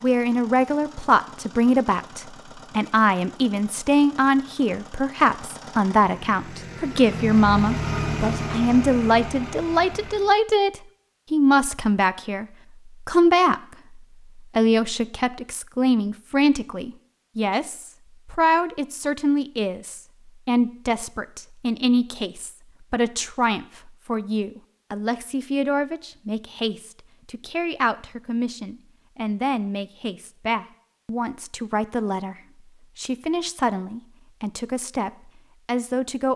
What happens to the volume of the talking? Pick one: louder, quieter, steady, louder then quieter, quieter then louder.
quieter.